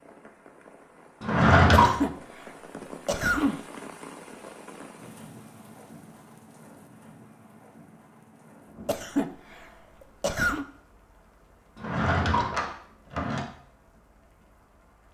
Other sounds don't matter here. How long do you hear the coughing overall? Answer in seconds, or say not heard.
4 s.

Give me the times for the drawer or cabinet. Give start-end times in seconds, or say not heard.
1.2-1.9, 11.8-13.4.